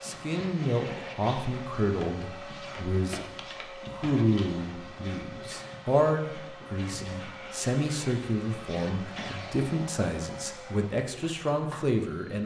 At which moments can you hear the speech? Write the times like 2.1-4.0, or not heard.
0.0-3.2, 3.9-12.4.